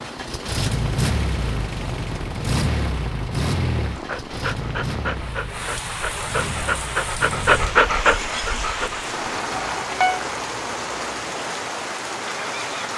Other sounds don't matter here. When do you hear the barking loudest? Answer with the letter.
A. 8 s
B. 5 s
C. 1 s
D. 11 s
A.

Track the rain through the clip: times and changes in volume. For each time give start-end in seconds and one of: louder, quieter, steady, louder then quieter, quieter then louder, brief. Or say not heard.
0.0-12.9 louder.